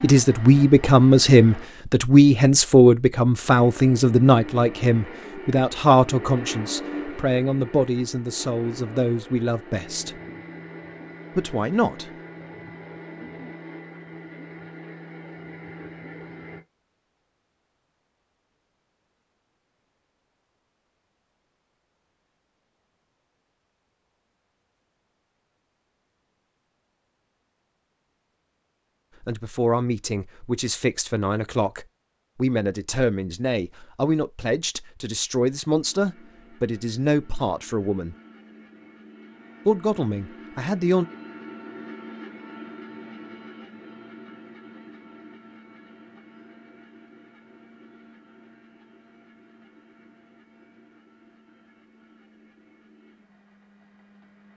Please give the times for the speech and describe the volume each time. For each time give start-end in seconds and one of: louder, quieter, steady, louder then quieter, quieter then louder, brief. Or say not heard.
0.0-10.2 quieter
11.3-12.1 brief
29.2-38.1 steady
39.6-41.0 brief.